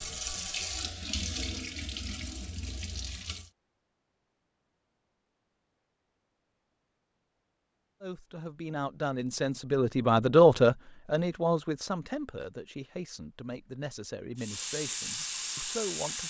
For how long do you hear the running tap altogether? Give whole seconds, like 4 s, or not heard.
5 s.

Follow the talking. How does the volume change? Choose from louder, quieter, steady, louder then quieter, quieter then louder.
louder then quieter.